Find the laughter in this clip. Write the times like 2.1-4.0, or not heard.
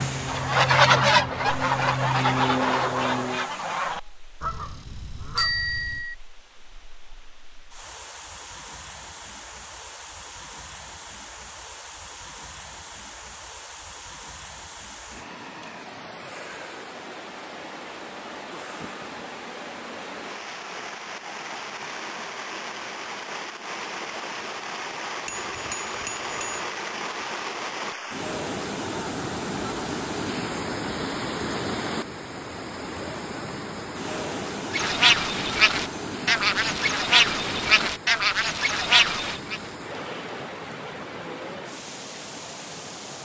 not heard.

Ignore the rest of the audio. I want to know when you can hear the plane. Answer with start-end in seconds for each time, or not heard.
0.0-3.5.